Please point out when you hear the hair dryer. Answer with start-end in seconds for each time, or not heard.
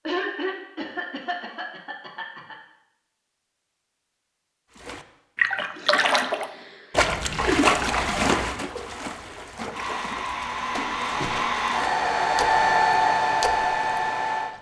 9.7-14.5.